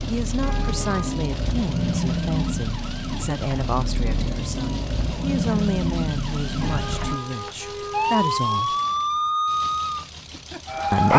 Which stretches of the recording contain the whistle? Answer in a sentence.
You can't hear the whistle here.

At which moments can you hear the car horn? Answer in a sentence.
The car horn can be heard from 0.4 to 1.1 s and from 6.6 to 8.6 s.